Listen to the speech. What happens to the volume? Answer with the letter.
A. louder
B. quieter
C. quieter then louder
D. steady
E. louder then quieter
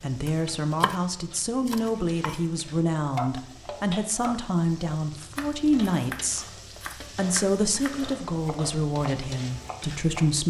D.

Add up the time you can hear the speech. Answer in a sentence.
The speech can be heard for 10 seconds in total.